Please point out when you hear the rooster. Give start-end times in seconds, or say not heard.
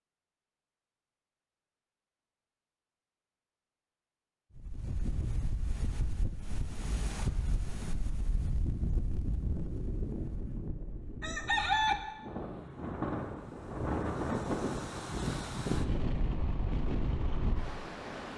11.2-11.9.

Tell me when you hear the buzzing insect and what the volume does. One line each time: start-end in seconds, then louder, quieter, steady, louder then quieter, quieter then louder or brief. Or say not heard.
not heard.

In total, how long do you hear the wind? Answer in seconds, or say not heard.
14 s.